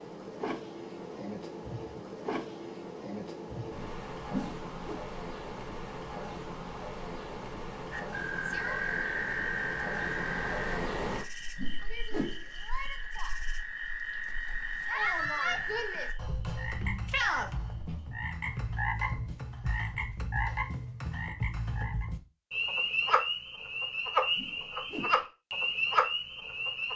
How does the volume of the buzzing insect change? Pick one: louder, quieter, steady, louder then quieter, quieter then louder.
quieter.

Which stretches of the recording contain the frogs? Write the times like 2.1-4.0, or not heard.
7.9-26.9.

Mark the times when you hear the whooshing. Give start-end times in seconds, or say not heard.
4.3-5.0, 11.6-12.4, 24.4-25.2.